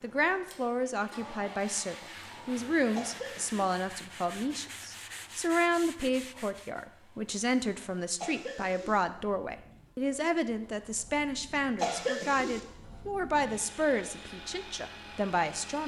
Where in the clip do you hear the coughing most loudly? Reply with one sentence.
The loudest moment of the coughing is at 12 seconds.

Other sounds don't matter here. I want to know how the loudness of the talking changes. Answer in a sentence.
The volume of the talking stays about the same.